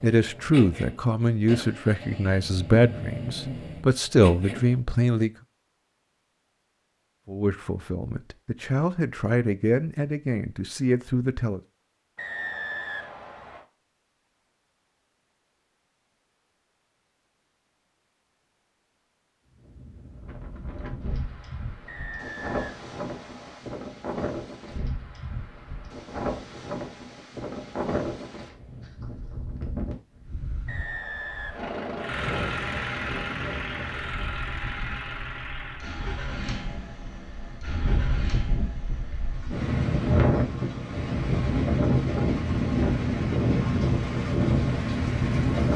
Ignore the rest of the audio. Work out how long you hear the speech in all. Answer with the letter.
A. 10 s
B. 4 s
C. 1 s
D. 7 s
A.